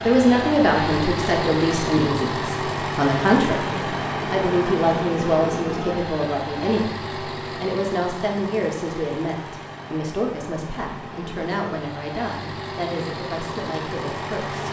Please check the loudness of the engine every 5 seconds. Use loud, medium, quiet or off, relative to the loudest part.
loud, medium, medium.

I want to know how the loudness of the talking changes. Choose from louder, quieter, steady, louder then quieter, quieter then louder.
quieter.